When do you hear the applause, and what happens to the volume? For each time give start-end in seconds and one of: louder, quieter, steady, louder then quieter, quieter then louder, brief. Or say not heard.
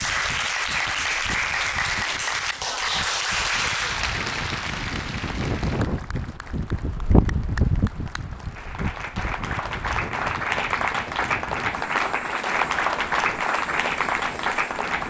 0.0-15.0 quieter then louder.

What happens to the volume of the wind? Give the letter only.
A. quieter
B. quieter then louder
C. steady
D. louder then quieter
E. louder
D.